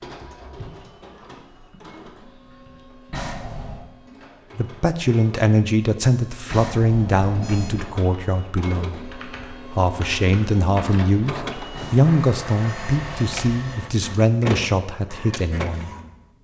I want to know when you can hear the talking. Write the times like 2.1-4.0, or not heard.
4.5-15.9.